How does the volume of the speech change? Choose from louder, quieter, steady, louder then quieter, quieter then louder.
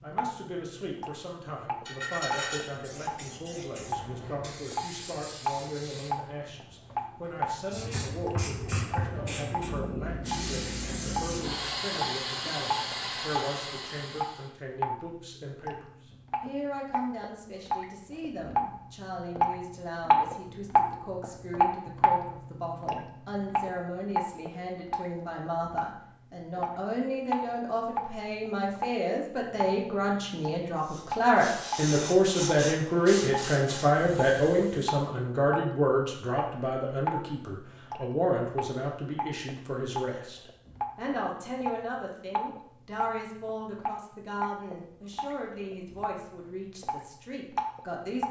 louder then quieter.